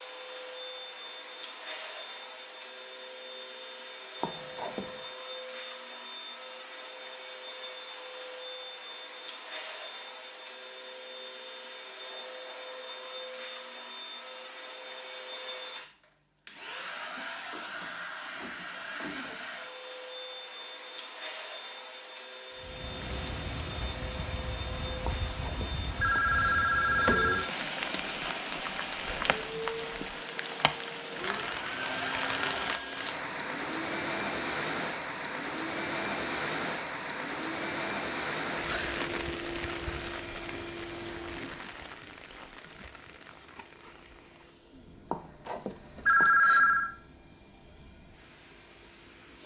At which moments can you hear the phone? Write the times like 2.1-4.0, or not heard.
4.2-4.9, 25.1-27.5, 45.1-46.9.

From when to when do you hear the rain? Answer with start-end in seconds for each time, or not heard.
22.6-49.4.